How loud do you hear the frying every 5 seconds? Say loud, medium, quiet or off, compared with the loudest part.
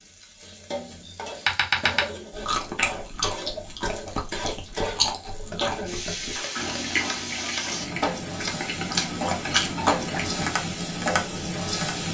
medium, loud, loud.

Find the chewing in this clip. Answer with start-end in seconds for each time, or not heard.
1.1-10.6.